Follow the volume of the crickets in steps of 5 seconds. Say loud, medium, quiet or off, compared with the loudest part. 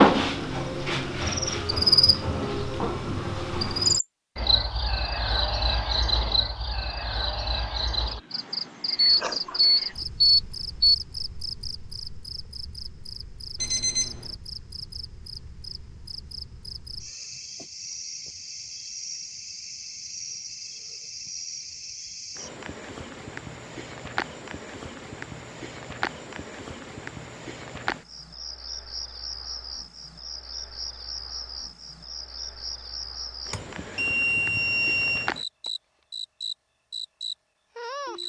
loud, medium, quiet, quiet, quiet, quiet, quiet, medium.